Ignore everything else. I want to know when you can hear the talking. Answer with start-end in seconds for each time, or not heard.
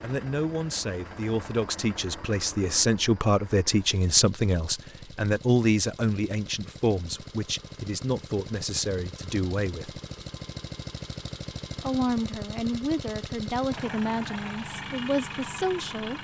0.0-10.0, 11.8-16.1.